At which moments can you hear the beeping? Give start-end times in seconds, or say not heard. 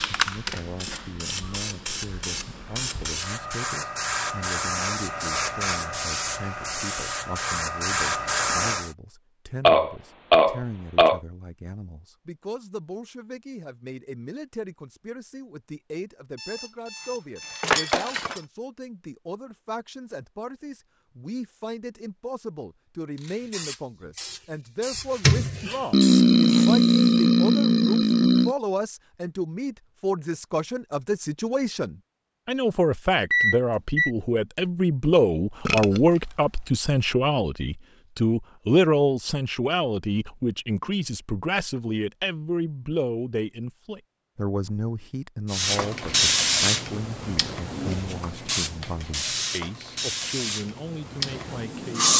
16.4-18.4, 33.3-34.1.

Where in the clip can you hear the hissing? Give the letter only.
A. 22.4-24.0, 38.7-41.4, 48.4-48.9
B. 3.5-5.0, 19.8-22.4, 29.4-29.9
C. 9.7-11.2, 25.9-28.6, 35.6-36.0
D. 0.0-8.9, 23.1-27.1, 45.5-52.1
D.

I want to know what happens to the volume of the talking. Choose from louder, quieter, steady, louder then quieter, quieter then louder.
louder then quieter.